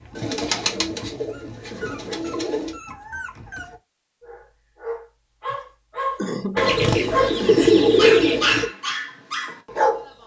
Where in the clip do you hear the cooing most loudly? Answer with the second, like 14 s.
8 s.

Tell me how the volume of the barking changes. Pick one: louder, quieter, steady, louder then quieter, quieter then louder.
louder.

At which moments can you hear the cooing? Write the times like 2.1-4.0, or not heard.
0.1-2.8, 6.5-8.7.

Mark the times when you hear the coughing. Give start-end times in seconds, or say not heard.
0.5-2.4, 6.2-7.9.